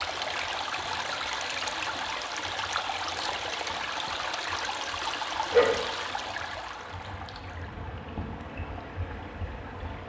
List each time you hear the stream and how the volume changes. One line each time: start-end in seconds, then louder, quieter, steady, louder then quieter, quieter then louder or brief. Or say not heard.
0.0-10.0 quieter.